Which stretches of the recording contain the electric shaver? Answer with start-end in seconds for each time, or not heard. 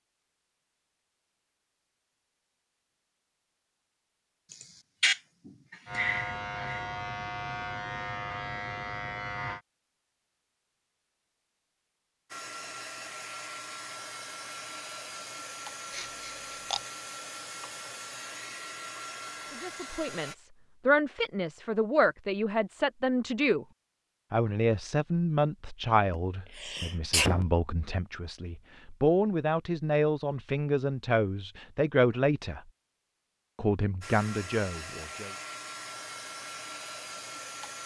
5.8-9.6.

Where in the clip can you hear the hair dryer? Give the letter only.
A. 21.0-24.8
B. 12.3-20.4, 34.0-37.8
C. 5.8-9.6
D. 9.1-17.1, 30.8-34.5
B.